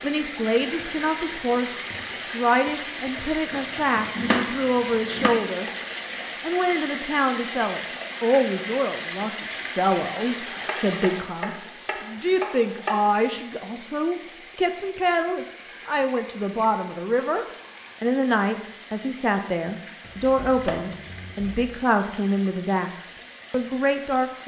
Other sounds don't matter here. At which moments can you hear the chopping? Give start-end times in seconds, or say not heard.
3.5-5.3, 10.4-13.2, 20.0-21.7.